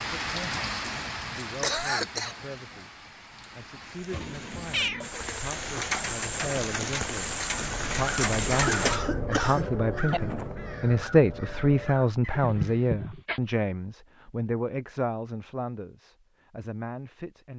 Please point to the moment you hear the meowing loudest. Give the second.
5 s.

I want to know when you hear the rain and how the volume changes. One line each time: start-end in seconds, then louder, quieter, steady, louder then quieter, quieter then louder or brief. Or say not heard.
0.0-9.0 quieter then louder.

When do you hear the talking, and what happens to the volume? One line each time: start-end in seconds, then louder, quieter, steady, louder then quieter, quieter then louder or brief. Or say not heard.
0.0-17.5 louder then quieter.